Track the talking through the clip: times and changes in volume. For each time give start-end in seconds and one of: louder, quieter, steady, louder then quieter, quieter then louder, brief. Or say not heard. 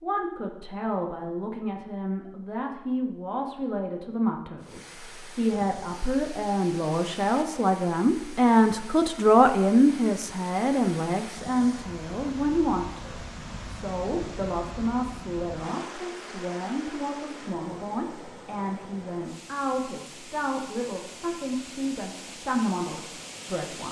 0.0-23.8 louder then quieter.